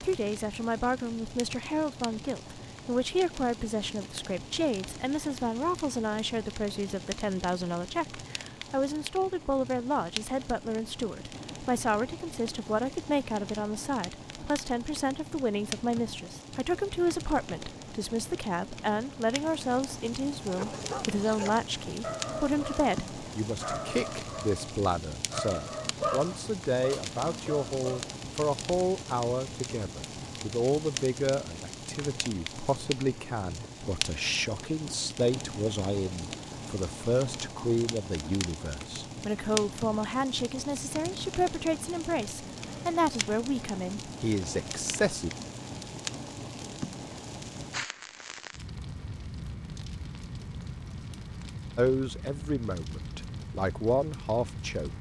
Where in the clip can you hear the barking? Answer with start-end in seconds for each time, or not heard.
20.4-28.1.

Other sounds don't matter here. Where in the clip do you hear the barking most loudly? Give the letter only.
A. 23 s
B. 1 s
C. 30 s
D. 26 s
D.